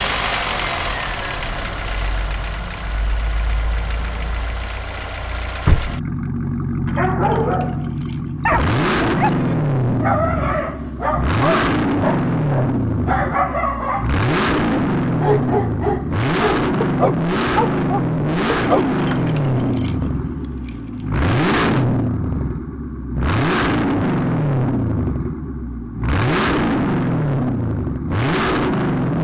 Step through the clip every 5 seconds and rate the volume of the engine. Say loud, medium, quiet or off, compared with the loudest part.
medium, loud, loud, loud, loud, loud.